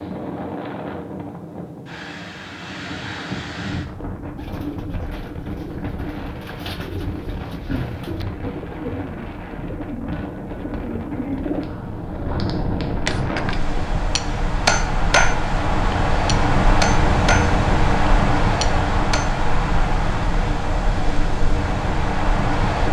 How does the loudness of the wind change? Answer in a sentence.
The volume of the wind goes up.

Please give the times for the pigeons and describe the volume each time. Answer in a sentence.
You can hear the pigeons from 4.3 to 11.7 s, getting louder.